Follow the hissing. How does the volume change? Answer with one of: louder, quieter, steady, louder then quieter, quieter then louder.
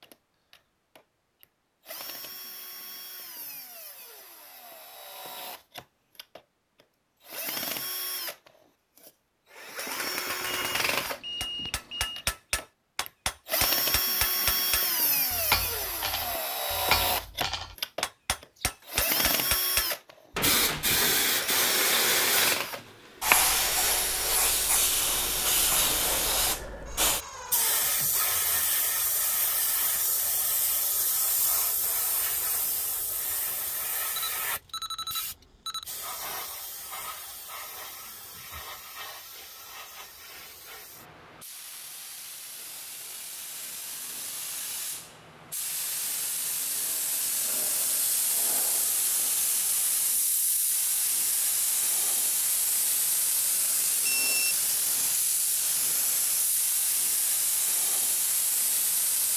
quieter then louder.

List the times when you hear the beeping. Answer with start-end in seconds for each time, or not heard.
10.4-12.2, 34.1-35.9, 54.0-54.5.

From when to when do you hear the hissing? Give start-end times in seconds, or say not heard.
20.4-59.3.